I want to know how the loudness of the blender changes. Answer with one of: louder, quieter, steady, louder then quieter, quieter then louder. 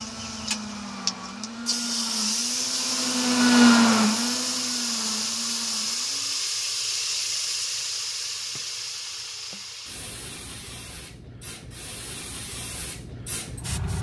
louder then quieter.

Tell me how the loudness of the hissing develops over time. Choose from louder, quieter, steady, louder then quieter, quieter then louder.
quieter.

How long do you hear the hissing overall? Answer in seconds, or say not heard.
14 s.